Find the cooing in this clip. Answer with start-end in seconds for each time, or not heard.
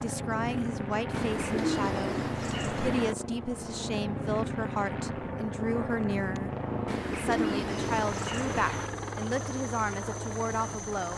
1.1-3.1, 6.8-8.9.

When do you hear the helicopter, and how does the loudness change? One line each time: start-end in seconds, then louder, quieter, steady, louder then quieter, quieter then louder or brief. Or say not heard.
0.0-11.1 steady.